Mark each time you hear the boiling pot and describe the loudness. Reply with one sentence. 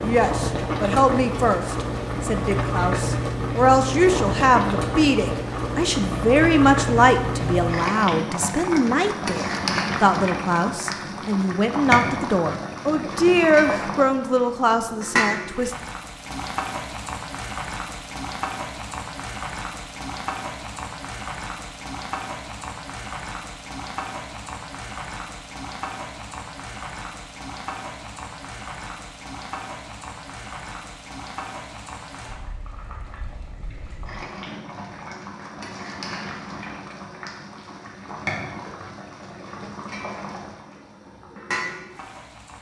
The boiling pot can be heard from 0.0 to 42.5 s, getting quieter.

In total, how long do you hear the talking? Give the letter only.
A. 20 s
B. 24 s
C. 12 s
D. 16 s
D.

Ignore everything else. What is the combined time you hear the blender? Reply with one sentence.
You can't hear the blender here.